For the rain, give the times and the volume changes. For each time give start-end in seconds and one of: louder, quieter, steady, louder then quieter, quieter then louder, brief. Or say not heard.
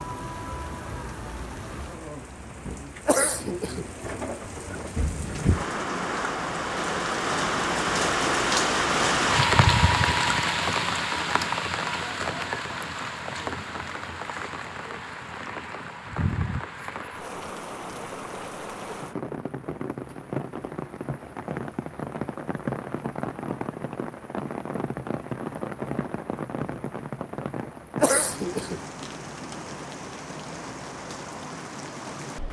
0.0-32.4 louder then quieter.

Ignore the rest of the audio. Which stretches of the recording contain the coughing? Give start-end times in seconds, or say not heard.
3.0-3.9, 28.0-28.8.